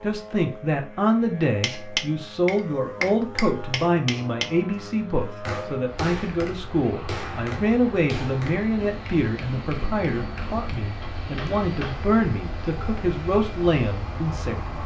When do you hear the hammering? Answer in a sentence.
The hammering can be heard from 1.6 to 12.1 s.